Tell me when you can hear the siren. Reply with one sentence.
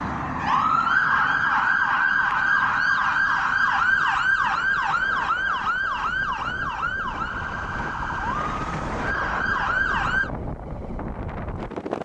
You can hear the siren from 0.0 to 10.3 s.